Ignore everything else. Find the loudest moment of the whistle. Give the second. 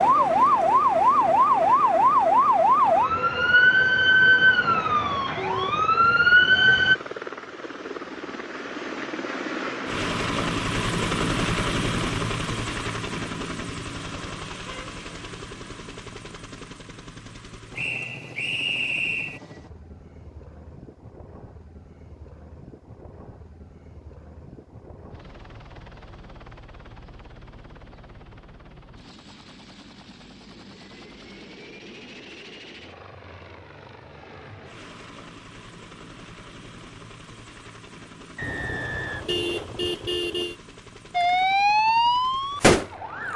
19 s.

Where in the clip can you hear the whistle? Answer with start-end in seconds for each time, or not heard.
17.8-19.4, 38.4-39.3.